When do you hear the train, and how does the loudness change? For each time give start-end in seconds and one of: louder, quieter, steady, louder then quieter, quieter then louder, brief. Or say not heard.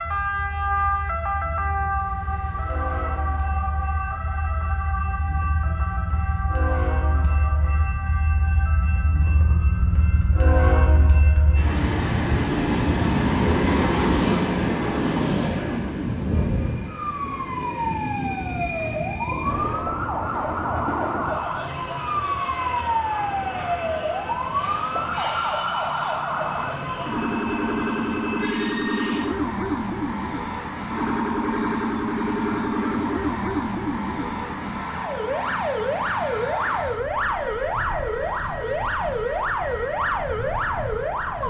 0.0-41.4 louder then quieter.